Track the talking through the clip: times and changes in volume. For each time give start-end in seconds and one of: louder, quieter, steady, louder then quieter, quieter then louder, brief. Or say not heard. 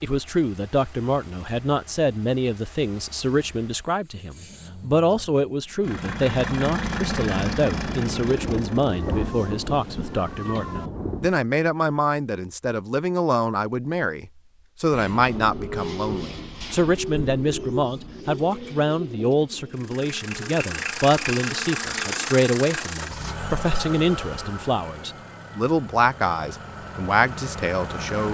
0.0-28.2 steady.